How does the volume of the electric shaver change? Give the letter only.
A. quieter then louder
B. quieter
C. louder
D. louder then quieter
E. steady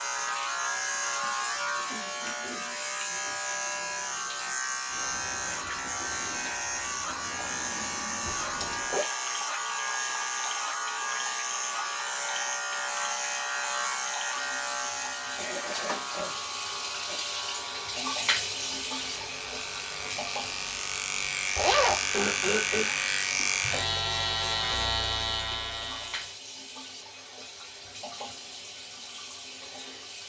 A.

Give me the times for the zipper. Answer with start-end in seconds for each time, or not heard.
8.2-9.1, 21.6-22.1.